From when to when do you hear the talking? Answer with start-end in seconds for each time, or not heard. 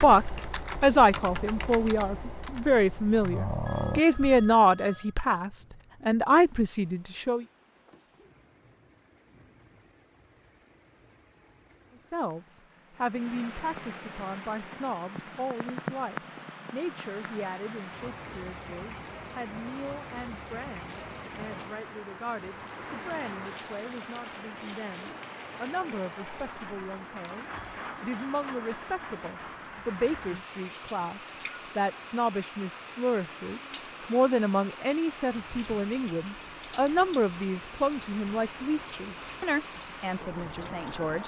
0.0-7.5, 12.1-41.2.